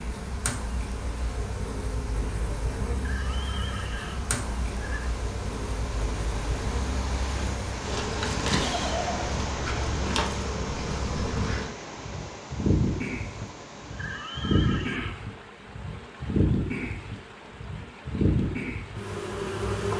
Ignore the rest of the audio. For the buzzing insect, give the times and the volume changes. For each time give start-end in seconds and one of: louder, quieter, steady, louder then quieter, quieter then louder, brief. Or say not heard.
0.0-19.9 louder.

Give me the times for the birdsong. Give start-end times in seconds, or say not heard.
not heard.